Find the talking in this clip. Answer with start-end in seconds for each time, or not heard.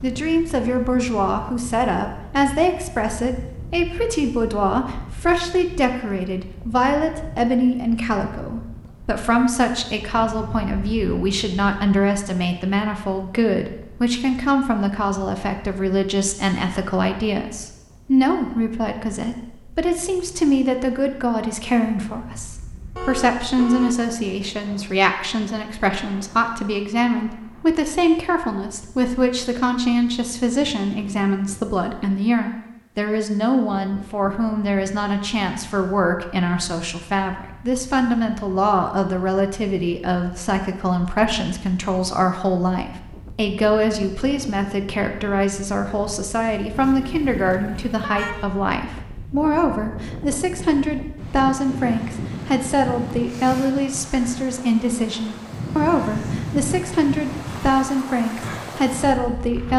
0.0-59.7.